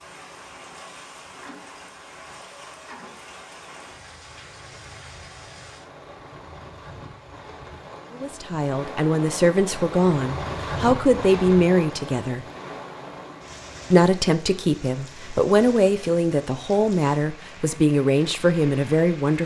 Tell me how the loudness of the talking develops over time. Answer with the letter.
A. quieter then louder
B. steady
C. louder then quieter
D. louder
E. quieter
B.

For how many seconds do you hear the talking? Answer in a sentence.
The talking can be heard for 10 seconds in total.